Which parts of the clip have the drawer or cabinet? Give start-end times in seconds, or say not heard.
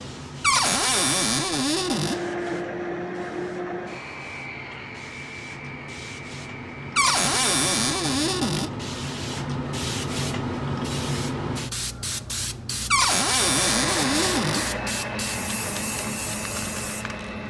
0.4-2.2, 7.0-8.7, 12.9-14.7.